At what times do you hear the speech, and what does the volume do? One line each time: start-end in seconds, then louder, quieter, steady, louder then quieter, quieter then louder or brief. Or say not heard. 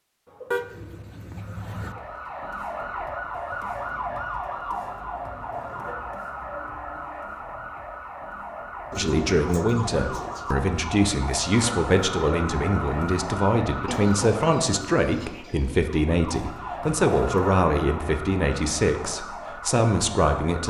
8.9-20.6 steady.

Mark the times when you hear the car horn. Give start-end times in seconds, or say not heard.
0.5-1.9.